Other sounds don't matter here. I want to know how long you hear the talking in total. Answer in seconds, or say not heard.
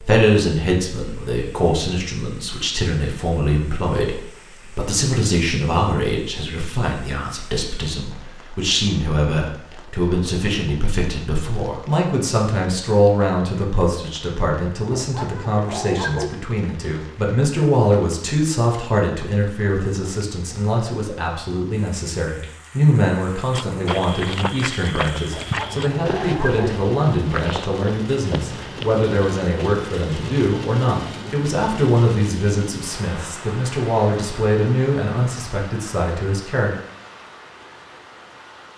37 s.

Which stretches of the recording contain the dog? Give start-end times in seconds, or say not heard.
14.9-16.4, 25.3-26.8.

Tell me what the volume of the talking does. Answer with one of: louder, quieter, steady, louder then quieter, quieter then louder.
steady.